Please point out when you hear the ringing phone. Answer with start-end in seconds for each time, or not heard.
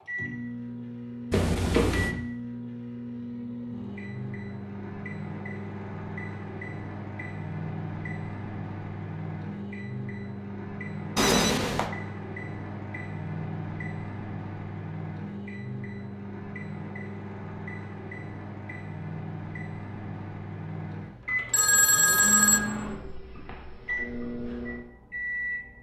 1.3-2.1, 11.2-11.9, 21.5-22.6.